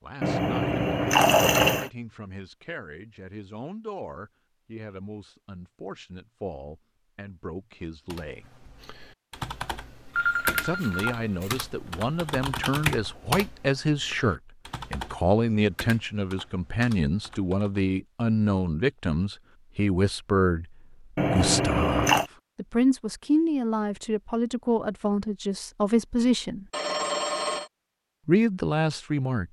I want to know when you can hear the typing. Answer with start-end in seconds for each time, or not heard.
8.1-17.9.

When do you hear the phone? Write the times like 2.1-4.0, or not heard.
10.2-11.7, 26.7-27.7.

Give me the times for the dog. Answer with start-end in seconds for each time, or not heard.
not heard.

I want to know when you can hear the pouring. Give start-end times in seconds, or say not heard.
0.2-1.9, 21.1-22.3.